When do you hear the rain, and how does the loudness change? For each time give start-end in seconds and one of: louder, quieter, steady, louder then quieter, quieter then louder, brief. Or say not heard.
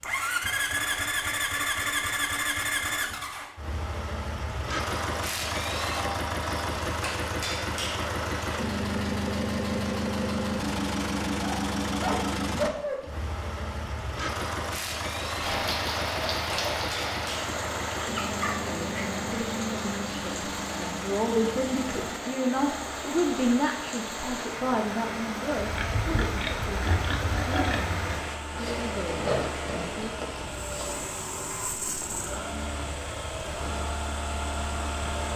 15.3-35.2 quieter.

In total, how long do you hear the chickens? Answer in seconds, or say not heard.
not heard.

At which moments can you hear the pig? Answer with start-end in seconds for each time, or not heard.
25.6-31.4.